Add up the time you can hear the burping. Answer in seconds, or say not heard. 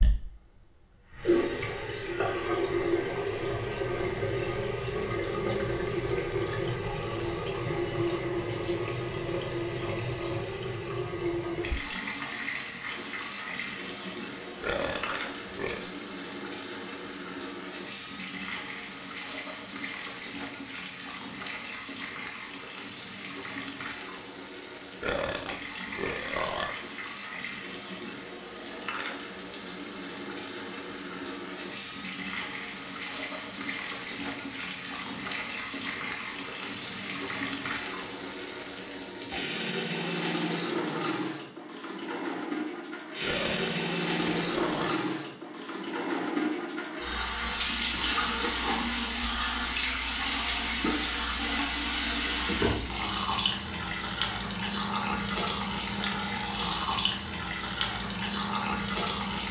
5 s.